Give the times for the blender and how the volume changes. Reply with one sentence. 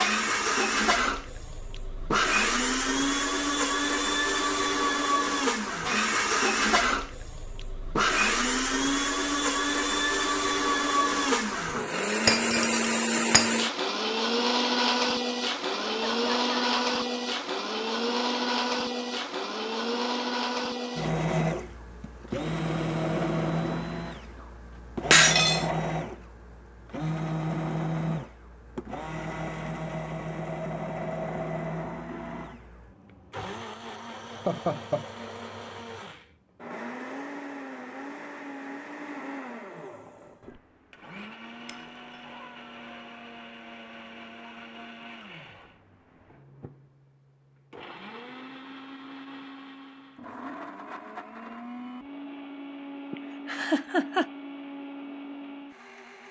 You can hear the blender from 0.0 to 56.2 s, getting quieter.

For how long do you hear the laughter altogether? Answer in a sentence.
The laughter can be heard for 3 seconds in total.